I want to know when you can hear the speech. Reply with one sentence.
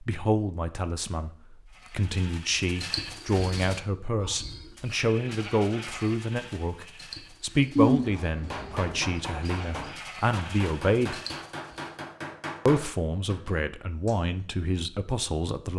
The speech can be heard from 0.0 to 11.2 s and from 12.7 to 15.7 s.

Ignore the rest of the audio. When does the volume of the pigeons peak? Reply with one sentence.
The volume of the pigeons peaks at 8 seconds.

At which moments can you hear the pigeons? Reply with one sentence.
You can hear the pigeons from 7.8 to 9.9 s.